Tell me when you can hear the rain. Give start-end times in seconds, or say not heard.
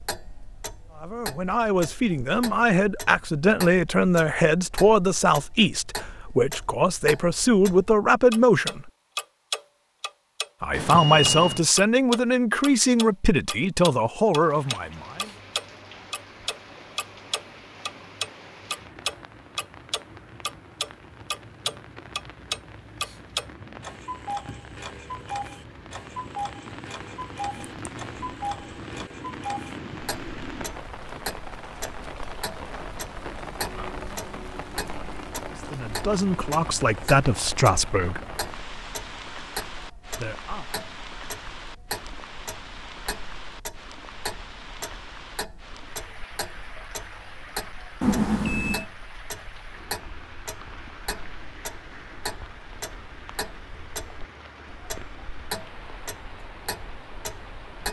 14.3-57.8.